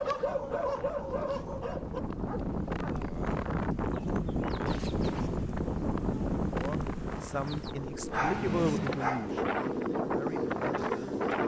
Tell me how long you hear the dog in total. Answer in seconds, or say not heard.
5 s.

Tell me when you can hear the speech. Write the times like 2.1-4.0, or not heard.
6.5-11.2.